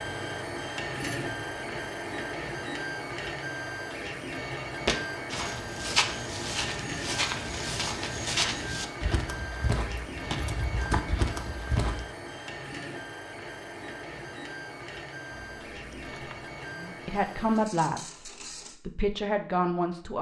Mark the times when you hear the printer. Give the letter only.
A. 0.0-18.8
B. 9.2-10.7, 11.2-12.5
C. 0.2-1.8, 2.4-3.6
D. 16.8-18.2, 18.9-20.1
A.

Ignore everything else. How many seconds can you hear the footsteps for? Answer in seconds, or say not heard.
7 s.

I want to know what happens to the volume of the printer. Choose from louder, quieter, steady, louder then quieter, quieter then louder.
quieter.